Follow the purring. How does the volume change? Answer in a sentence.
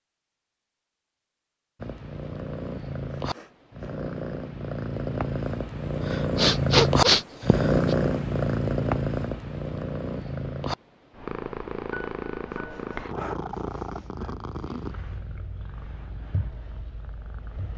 The loudness of the purring goes up, then down.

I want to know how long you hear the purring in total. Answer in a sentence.
You can hear the purring for 16 seconds altogether.